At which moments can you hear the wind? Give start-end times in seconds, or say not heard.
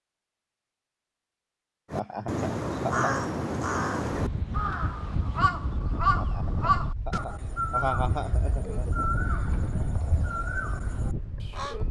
4.0-11.8.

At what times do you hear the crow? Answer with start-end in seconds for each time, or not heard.
1.9-11.8.